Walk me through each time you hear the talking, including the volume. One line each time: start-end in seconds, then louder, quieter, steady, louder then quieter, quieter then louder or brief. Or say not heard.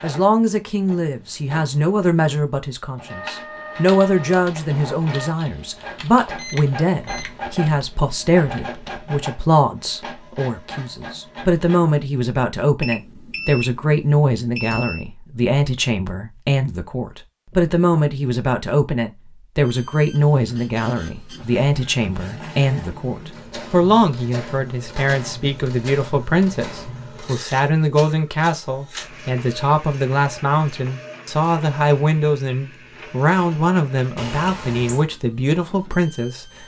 0.0-36.6 steady.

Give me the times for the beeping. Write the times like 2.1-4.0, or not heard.
6.3-7.3, 12.8-15.1, 34.1-35.0.